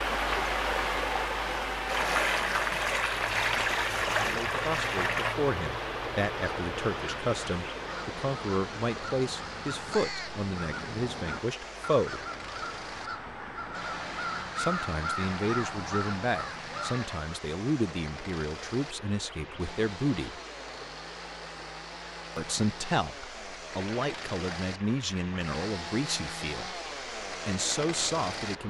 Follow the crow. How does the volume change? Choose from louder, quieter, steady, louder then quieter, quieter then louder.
louder.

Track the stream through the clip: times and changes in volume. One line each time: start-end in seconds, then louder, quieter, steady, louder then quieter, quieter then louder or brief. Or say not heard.
0.0-28.6 quieter.